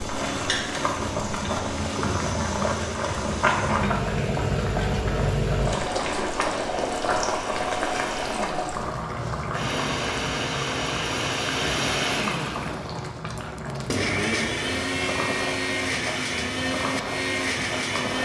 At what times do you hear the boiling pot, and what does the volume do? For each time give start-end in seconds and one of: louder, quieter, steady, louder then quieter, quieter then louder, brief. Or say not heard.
0.0-18.2 quieter.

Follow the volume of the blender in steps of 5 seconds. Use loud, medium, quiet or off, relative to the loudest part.
medium, medium, loud, loud.